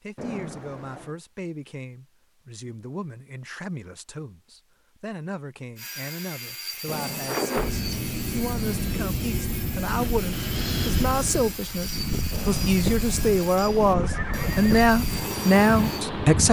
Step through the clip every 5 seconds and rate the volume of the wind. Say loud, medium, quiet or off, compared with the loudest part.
off, loud, loud, loud.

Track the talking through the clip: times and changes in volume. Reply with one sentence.
The talking can be heard from 0.0 to 16.4 s, getting louder.